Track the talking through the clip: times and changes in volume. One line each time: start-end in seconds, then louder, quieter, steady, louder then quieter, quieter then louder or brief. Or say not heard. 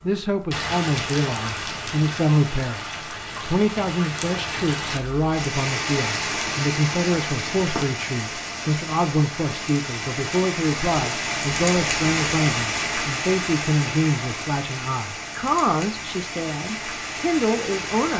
0.0-18.1 steady.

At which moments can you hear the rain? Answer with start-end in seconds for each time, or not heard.
0.0-18.1.